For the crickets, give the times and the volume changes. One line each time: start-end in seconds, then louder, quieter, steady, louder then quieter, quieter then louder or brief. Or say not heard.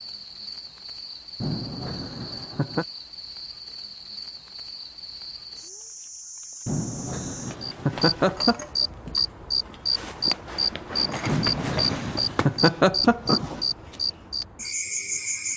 0.0-15.5 louder.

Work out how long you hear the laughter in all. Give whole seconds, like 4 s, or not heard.
6 s.